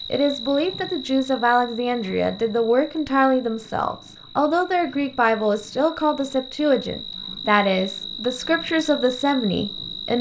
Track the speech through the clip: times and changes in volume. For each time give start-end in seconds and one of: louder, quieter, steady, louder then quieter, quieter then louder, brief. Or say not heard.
0.1-10.1 steady.